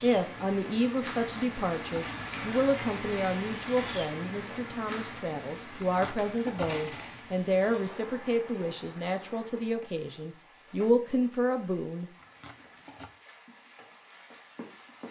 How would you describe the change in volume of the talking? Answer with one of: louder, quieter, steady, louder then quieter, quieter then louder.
steady.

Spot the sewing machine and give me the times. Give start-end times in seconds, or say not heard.
not heard.